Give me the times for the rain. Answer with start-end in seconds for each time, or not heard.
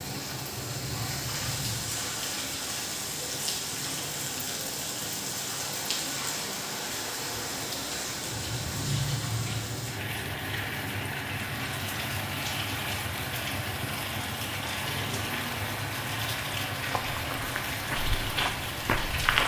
0.0-19.4.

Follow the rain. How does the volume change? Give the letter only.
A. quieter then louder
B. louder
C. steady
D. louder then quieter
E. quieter
C.